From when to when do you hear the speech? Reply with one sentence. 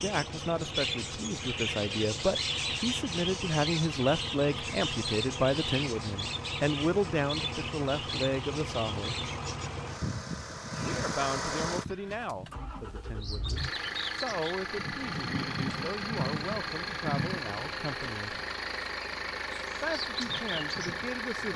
You can hear the speech from 0.0 to 9.2 s, from 10.8 to 18.4 s and from 19.8 to 21.5 s.